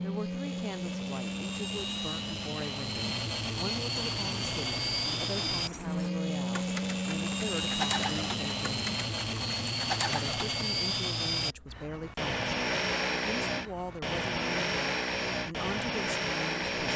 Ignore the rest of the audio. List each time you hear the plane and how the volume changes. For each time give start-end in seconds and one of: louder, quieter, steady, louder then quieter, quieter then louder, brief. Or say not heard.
0.0-16.9 steady.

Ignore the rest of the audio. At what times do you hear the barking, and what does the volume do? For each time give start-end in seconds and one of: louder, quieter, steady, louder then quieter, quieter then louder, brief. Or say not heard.
not heard.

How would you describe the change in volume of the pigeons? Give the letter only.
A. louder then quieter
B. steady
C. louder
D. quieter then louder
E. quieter
C.